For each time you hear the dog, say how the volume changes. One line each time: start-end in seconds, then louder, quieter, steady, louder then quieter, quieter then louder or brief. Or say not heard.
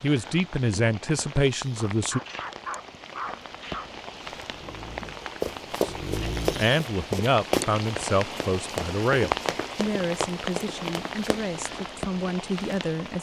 1.9-6.8 quieter then louder.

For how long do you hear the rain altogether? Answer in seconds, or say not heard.
13 s.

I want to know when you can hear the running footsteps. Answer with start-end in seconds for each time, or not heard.
5.4-7.8, 8.3-11.4.